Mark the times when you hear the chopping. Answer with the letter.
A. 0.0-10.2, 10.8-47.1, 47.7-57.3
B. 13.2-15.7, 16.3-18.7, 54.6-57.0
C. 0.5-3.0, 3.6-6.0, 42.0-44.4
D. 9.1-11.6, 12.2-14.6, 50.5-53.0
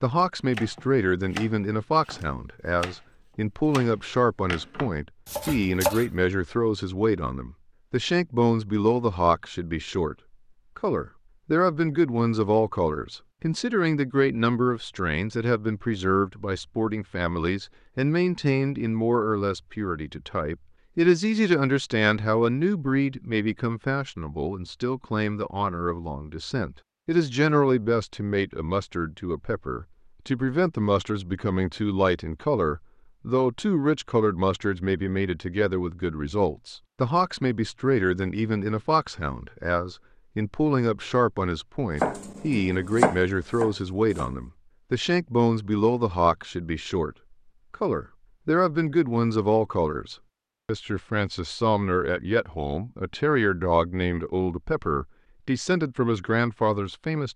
C.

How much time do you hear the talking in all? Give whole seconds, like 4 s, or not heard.
56 s.